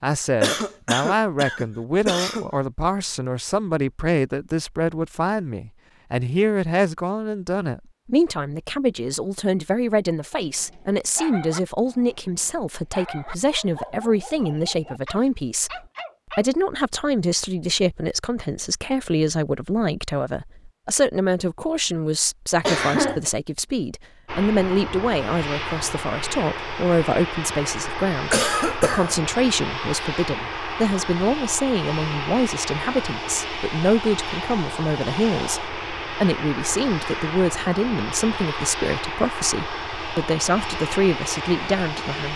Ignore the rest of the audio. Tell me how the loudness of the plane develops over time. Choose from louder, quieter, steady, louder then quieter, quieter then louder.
steady.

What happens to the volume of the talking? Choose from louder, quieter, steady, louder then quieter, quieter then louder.
steady.